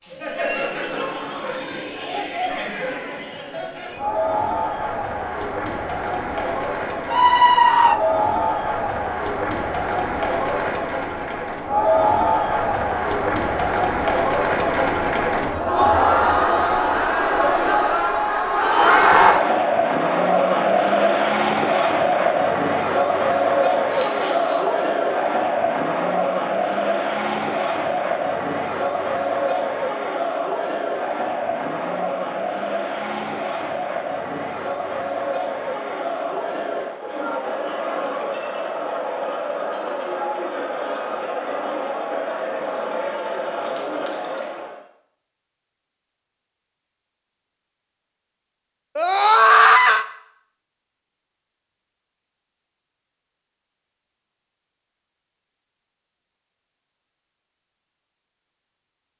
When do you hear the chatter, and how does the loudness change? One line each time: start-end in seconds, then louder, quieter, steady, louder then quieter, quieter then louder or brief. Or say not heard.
0.0-44.8 louder then quieter.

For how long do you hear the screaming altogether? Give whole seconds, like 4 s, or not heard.
2 s.